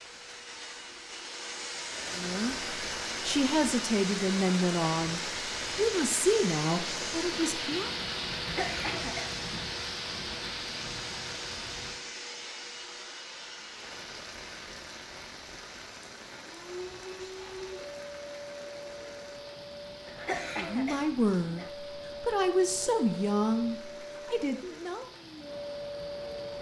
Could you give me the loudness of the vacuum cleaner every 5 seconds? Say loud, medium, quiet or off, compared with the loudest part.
loud, loud, medium, medium, medium, loud.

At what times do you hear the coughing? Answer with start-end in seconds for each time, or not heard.
8.3-9.4, 20.1-21.7.